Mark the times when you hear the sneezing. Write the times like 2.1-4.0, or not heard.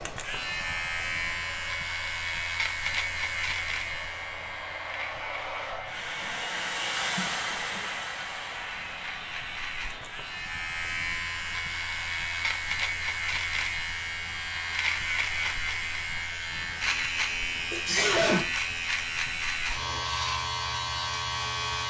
7.2-7.8, 17.7-18.4.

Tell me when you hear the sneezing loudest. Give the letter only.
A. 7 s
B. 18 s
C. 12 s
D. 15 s
B.